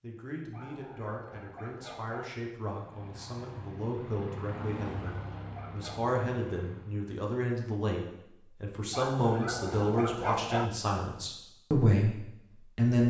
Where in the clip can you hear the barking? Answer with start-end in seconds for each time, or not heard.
0.5-2.3, 4.5-6.2, 8.9-10.7.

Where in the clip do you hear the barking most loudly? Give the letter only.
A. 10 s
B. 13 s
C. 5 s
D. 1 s
A.